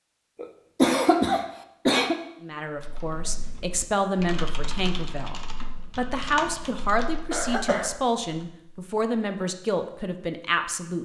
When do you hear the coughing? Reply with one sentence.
The coughing can be heard from 0.3 to 2.1 s and from 7.3 to 7.9 s.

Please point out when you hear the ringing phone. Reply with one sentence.
The ringing phone can't be heard in this clip.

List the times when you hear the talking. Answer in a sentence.
The talking can be heard from 2.4 to 10.9 s.